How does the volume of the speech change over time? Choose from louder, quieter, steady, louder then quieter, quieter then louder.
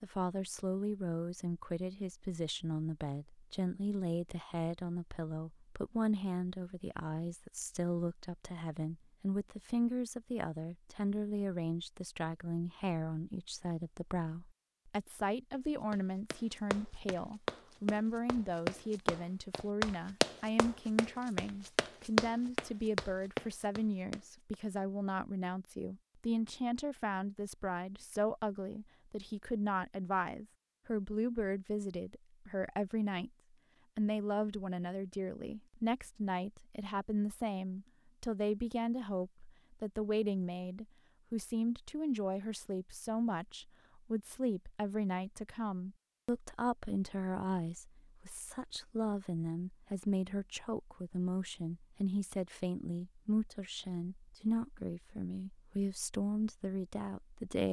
steady.